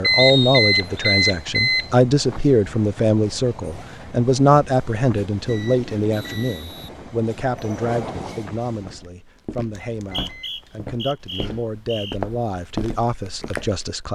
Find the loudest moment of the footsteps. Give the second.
13 s.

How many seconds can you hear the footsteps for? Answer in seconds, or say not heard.
5 s.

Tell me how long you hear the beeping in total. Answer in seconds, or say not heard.
4 s.